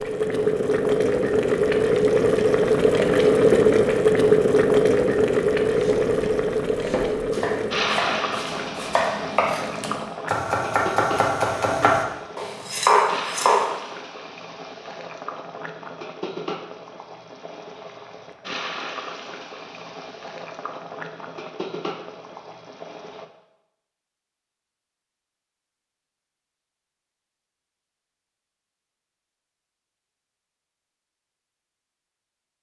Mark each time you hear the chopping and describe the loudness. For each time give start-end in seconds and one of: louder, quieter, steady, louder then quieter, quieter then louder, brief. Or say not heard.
5.7-13.7 louder.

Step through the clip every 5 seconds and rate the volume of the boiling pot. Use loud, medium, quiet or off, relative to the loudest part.
loud, medium, quiet, quiet, quiet, off, off.